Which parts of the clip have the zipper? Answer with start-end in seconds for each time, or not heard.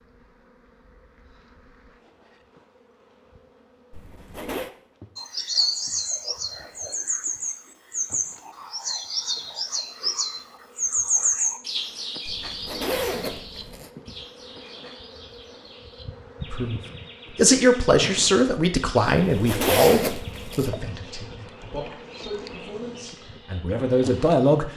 3.9-4.7, 12.2-13.9, 19.1-20.7.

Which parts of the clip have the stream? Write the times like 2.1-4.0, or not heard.
not heard.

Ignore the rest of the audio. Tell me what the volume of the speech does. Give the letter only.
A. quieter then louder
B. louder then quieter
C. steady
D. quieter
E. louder
A.